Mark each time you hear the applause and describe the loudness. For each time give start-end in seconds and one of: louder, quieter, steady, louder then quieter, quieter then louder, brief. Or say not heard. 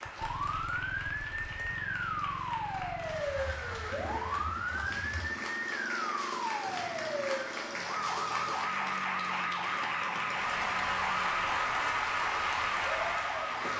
0.0-13.7 louder.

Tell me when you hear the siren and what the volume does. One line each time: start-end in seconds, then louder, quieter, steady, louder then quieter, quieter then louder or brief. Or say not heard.
0.1-13.7 steady.